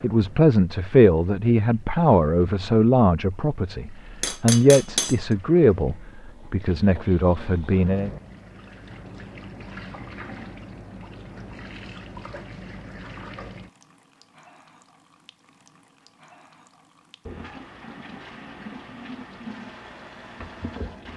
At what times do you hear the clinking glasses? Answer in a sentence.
The clinking glasses can be heard from 4.2 to 5.2 s.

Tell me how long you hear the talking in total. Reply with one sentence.
The talking can be heard for 8 seconds in total.